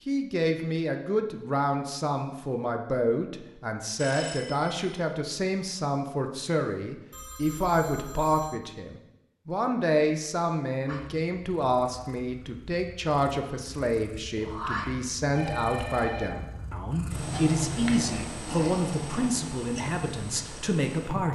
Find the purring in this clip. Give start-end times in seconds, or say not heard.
10.8-21.3.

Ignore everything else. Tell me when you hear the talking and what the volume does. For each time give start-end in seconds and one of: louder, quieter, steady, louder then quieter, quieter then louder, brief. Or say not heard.
0.1-21.3 steady.